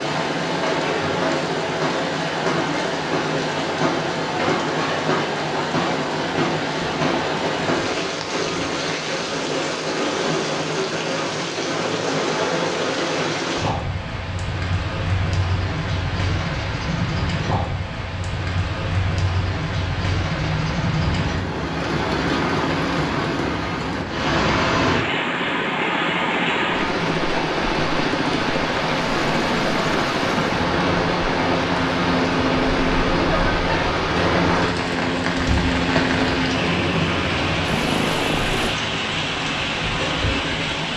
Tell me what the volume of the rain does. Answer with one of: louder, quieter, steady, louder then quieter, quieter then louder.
steady.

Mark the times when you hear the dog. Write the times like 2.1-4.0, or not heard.
not heard.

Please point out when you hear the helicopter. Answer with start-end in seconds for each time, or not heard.
20.3-38.8.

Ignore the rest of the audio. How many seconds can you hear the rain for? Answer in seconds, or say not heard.
41 s.